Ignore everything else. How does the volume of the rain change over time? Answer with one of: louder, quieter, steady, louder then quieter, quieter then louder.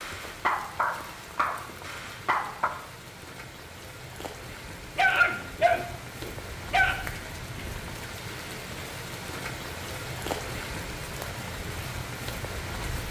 louder.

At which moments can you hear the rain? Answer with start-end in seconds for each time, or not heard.
0.0-13.0.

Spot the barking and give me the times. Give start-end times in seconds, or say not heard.
0.0-2.7, 5.0-7.0.